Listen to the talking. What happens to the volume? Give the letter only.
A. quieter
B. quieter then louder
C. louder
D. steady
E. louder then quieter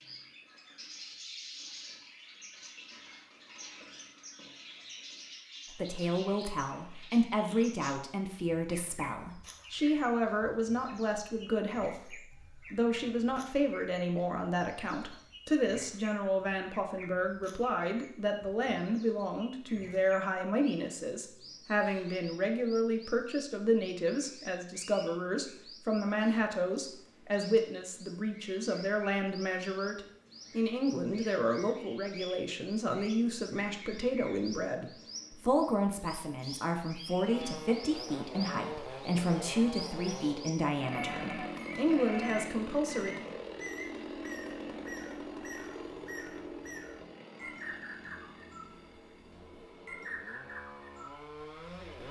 D.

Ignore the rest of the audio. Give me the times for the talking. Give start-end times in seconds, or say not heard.
5.7-43.1.